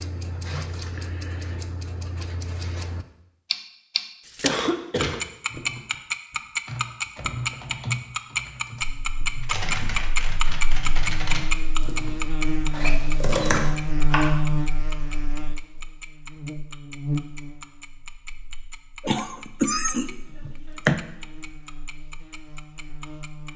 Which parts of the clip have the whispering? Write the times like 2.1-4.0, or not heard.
not heard.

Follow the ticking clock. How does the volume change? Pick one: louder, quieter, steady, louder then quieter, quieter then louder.
louder then quieter.